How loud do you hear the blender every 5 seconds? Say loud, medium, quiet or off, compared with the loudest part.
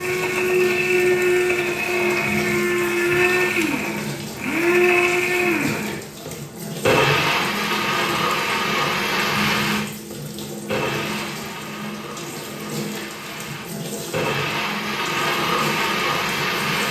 loud, loud, medium, loud.